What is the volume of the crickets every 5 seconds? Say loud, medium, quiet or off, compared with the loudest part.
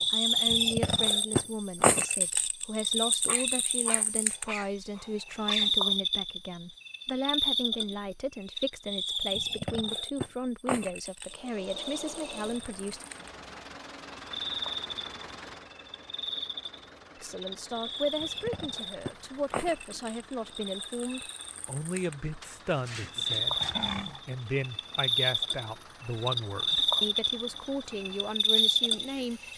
loud, loud, medium, medium, medium, loud.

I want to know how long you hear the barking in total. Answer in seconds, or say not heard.
4 s.